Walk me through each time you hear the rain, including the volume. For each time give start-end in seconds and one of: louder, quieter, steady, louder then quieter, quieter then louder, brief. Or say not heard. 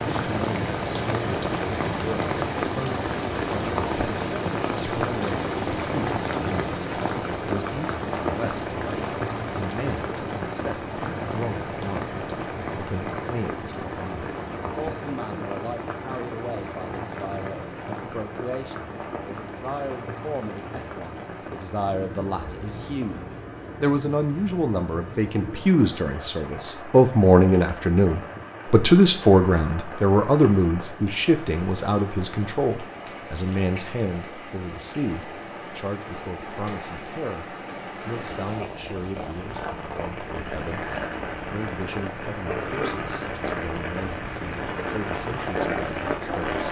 0.0-46.6 quieter then louder.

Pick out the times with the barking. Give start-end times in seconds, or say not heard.
not heard.